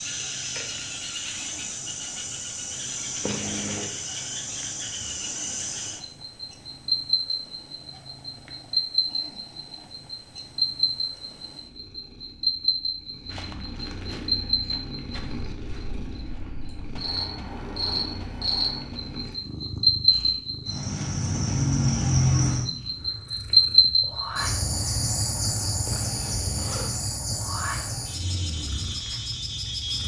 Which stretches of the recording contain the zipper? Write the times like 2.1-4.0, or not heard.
3.2-3.9, 25.9-26.9.